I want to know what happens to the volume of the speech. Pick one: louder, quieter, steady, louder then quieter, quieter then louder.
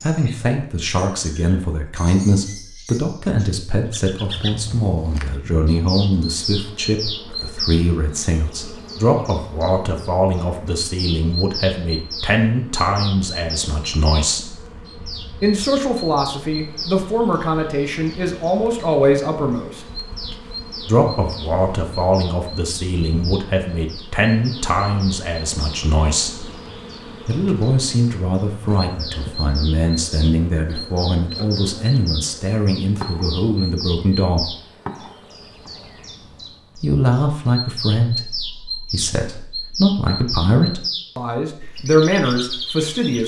steady.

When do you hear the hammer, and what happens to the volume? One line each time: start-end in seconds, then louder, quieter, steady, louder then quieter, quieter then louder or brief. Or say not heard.
not heard.